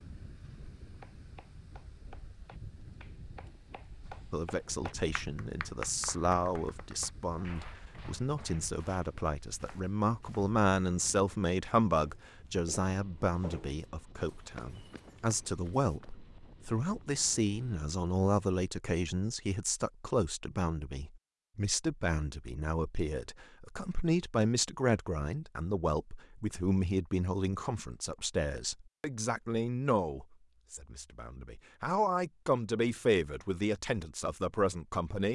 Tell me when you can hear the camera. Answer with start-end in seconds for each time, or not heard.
not heard.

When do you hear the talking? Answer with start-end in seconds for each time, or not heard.
4.3-35.3.